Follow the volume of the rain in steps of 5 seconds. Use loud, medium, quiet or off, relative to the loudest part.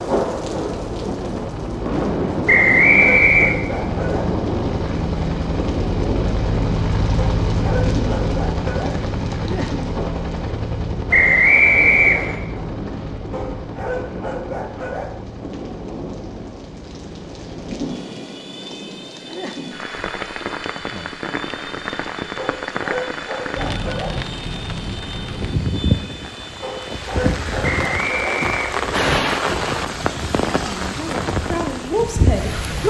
loud, medium, medium, medium, medium, loud, loud.